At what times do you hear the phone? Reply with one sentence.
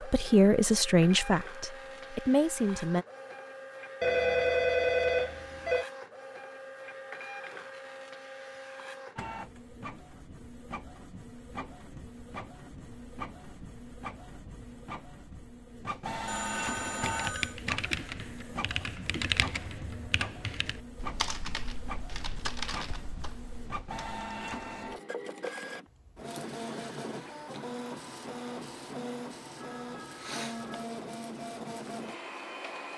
The phone can be heard from 4.0 to 5.8 s, from 16.2 to 17.6 s and from 29.6 to 30.9 s.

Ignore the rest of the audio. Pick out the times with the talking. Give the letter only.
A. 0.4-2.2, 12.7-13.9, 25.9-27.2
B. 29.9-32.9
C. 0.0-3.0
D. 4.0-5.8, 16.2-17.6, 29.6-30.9
C.